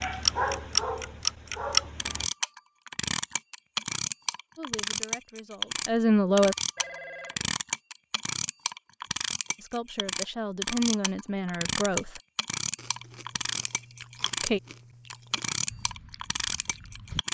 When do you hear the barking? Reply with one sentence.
The barking can be heard from 0.0 to 2.2 s.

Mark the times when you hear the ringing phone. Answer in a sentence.
The ringing phone can be heard from 6.8 to 7.5 s.